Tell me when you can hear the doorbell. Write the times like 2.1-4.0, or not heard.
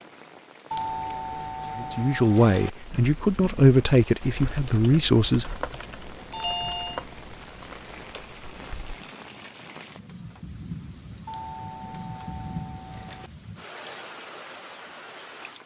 0.7-2.7, 6.3-7.0, 11.2-13.3.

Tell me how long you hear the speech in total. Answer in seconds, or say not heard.
4 s.